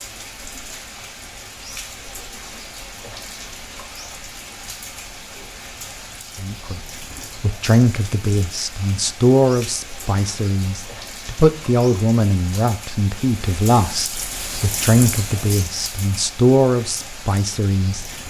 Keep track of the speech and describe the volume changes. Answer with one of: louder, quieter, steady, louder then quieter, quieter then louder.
steady.